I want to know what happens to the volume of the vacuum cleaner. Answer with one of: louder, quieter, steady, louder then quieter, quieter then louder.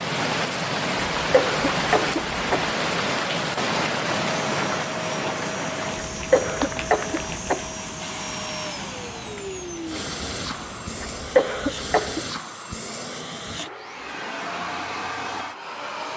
steady.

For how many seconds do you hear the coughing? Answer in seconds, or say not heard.
4 s.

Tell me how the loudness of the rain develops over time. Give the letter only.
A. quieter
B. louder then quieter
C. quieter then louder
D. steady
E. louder
A.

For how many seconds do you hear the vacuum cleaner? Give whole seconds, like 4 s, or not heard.
12 s.